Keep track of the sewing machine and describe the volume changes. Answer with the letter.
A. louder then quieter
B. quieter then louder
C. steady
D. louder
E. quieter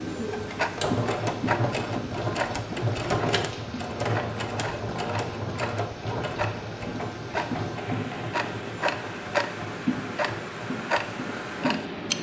E.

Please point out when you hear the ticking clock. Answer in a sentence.
The ticking clock can be heard from 0.0 to 12.1 s.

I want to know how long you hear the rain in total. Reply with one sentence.
You can hear the rain for 12 seconds altogether.